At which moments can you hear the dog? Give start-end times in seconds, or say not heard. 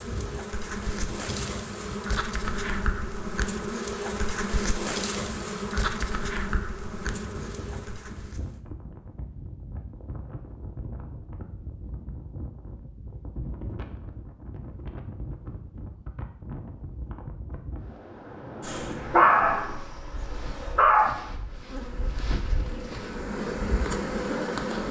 18.6-21.1.